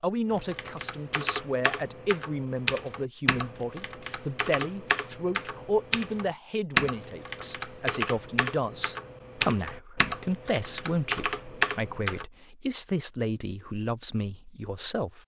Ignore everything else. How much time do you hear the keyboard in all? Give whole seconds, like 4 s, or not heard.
12 s.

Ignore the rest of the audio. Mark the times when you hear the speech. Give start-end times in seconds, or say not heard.
0.0-15.2.